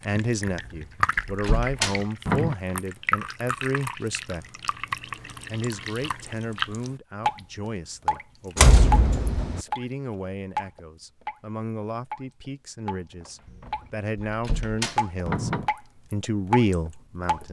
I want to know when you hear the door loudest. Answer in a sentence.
The loudest moment of the door is at 9 seconds.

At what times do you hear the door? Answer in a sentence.
The door can be heard from 0.6 to 2.5 s, from 8.6 to 9.6 s and from 13.6 to 15.7 s.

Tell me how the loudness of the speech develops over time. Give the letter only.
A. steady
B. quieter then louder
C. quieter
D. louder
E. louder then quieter
B.